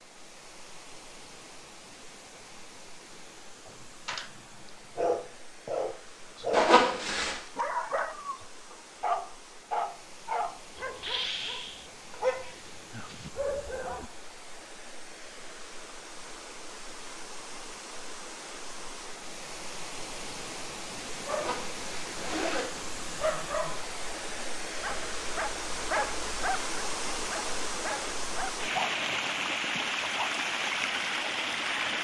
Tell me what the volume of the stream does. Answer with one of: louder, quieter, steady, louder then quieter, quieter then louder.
louder.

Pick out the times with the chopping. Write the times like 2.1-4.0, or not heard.
not heard.